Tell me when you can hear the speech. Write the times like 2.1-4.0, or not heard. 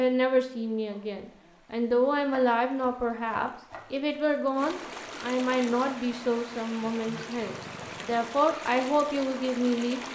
0.0-10.1.